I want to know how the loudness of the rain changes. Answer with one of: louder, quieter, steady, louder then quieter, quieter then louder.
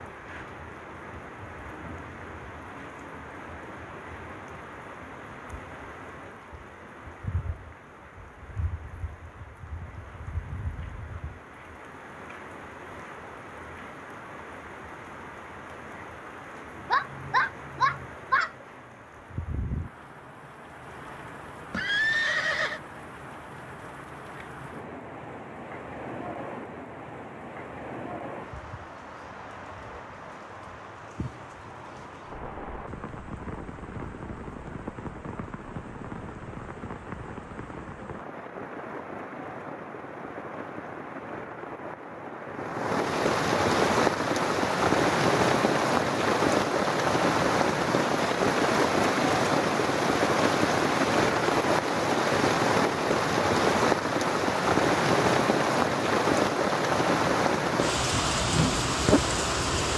louder.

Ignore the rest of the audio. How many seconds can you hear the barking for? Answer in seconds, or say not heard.
2 s.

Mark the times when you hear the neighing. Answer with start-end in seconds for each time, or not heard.
21.7-22.8.